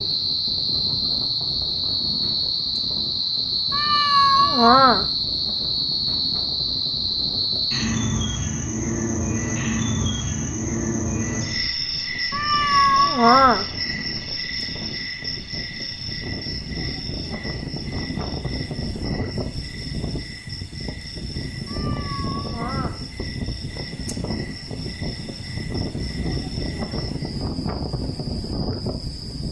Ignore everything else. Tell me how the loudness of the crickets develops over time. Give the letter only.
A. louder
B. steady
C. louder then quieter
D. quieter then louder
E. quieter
E.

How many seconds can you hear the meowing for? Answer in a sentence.
The meowing can be heard for 4 seconds in total.